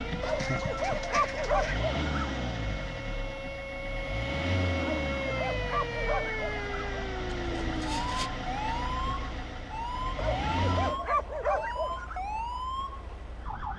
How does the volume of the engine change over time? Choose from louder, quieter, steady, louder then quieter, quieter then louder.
quieter.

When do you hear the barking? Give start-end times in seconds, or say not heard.
0.2-2.4, 4.8-7.0, 10.2-12.2.